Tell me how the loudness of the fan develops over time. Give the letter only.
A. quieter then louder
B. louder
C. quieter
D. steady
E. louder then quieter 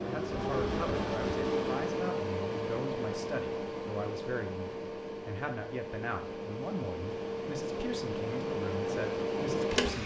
A.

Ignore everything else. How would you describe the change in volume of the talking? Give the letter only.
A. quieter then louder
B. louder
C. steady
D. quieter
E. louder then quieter
C.